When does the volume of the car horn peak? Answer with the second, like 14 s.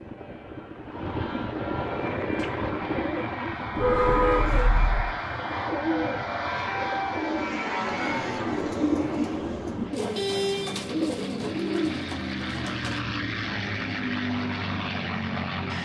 4 s.